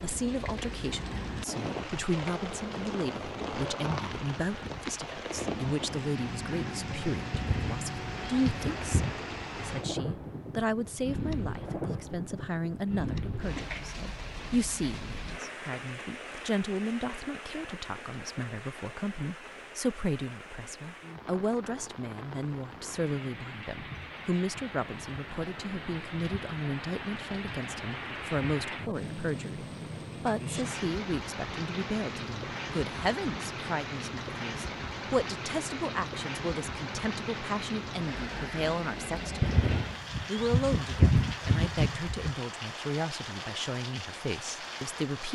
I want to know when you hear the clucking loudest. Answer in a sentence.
The volume of the clucking peaks at 41 seconds.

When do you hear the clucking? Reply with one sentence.
You can hear the clucking from 7.3 to 9.2 s and from 39.4 to 42.4 s.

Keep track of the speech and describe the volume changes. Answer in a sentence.
The volume of the speech stays about the same.